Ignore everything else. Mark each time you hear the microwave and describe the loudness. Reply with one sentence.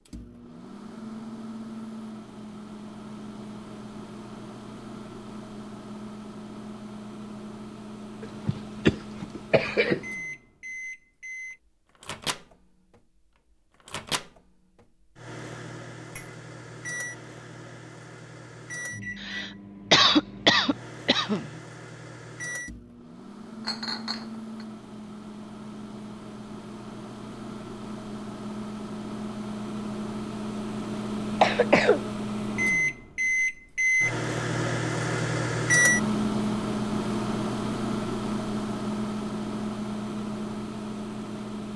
The microwave can be heard from 0.1 to 41.7 s, getting louder.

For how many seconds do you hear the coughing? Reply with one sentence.
The coughing can be heard for 5 seconds in total.